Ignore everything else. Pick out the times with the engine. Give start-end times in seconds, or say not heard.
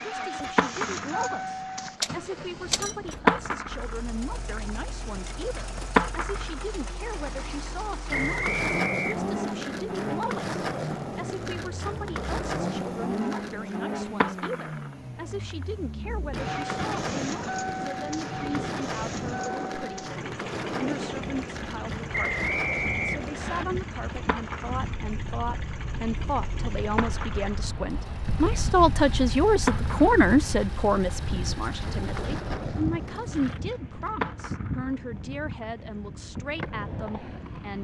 0.0-33.6.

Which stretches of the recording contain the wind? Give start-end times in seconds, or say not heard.
15.9-37.7.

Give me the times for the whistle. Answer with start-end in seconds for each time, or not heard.
8.1-9.1, 22.1-23.6.